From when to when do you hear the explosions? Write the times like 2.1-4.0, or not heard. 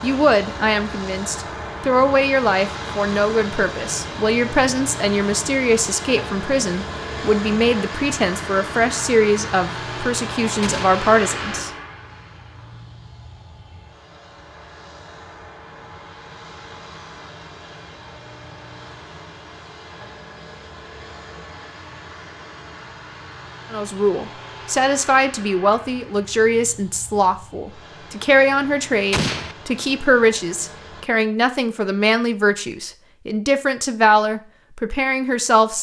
10.6-11.0, 29.1-29.6.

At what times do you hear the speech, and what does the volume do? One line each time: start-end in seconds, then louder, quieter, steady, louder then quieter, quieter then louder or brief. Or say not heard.
0.0-11.7 steady
23.7-35.7 steady.